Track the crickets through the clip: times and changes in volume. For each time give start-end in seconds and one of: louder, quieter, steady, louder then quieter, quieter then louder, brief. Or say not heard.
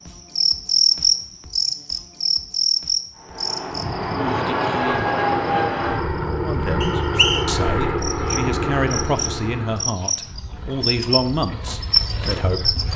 0.1-12.9 quieter then louder.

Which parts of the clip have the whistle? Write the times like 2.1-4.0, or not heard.
6.8-7.5.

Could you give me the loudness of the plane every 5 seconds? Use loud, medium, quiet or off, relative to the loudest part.
loud, loud, off.